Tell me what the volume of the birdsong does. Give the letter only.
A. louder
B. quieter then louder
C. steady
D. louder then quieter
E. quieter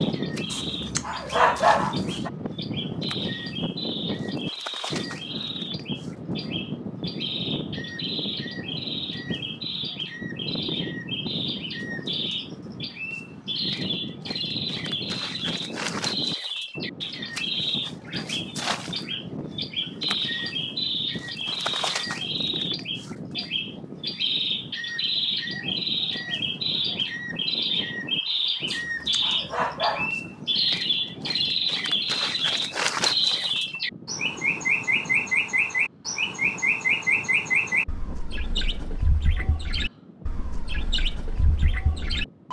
A.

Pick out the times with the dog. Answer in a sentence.
The dog can be heard from 0.5 to 2.3 s and from 28.6 to 30.1 s.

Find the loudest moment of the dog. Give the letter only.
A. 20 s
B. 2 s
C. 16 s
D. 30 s
B.